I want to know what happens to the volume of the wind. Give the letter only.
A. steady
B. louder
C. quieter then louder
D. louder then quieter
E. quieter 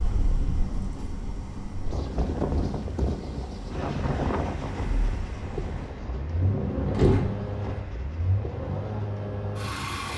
D.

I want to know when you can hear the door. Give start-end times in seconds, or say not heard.
6.4-7.8.